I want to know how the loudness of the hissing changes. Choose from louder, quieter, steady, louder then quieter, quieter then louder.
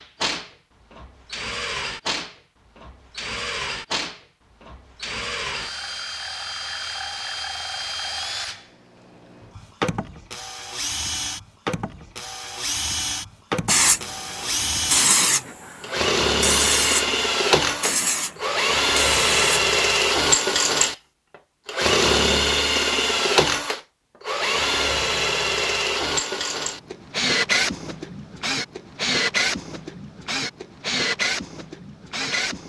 steady.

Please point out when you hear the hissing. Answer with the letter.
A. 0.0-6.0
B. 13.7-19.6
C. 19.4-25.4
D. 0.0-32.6
B.